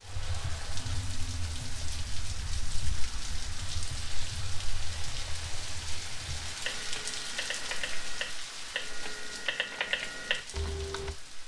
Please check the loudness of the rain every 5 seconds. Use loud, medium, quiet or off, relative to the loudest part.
loud, loud, medium.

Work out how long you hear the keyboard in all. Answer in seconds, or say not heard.
11 s.